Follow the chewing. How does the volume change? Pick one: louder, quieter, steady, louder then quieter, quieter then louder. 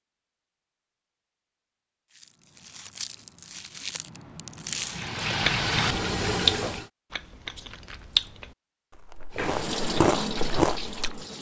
louder.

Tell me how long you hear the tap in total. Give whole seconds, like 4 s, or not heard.
4 s.